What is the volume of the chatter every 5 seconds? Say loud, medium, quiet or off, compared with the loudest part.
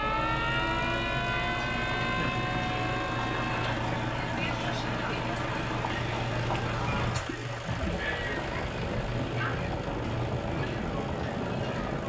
loud, loud, medium.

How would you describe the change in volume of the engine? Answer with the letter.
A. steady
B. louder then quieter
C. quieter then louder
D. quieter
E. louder
A.